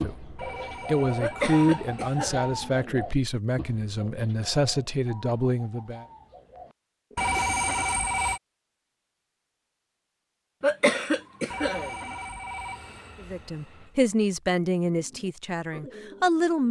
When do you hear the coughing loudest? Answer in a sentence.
The volume of the coughing peaks at 11 seconds.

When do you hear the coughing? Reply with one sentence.
You can hear the coughing from 1.2 to 3.0 s and from 10.6 to 12.1 s.